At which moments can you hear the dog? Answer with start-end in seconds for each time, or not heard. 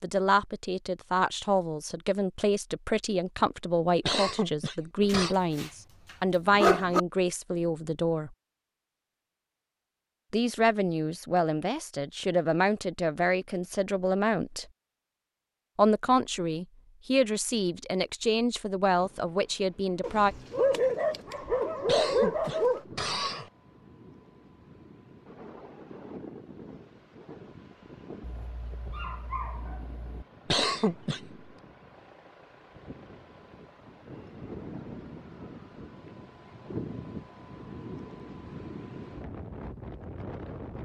5.0-7.0, 20.0-22.8, 28.2-30.2.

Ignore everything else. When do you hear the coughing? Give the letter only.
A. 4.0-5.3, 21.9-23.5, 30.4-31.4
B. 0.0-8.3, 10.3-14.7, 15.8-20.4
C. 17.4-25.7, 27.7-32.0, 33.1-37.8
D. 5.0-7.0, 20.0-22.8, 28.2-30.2
A.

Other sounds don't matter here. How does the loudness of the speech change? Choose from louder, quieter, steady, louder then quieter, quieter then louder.
steady.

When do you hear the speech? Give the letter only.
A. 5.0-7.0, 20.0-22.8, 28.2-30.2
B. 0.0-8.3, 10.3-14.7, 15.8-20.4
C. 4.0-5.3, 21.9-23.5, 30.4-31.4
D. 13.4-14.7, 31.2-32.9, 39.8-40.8
B.